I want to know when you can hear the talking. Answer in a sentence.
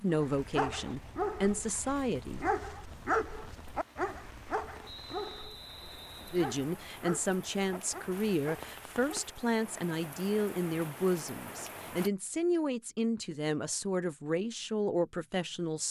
You can hear the talking from 0.0 to 2.5 s and from 6.3 to 15.8 s.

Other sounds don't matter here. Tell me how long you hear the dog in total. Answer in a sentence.
You can hear the dog for 9 seconds altogether.